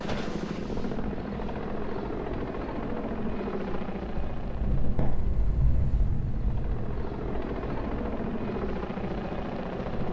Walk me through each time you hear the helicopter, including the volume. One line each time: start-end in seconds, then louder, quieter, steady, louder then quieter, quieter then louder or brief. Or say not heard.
0.0-10.0 quieter then louder.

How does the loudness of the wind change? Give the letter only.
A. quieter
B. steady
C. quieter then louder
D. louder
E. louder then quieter
E.